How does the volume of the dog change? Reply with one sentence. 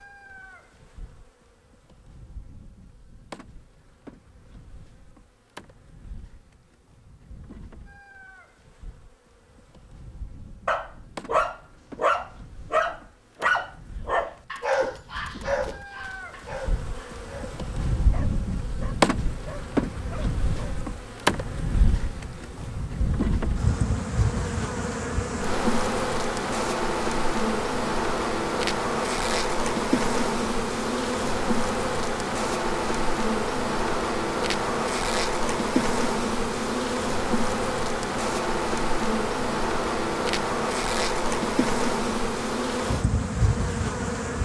The volume of the dog goes down.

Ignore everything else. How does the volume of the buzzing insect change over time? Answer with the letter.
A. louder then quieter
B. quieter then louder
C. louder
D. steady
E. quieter
C.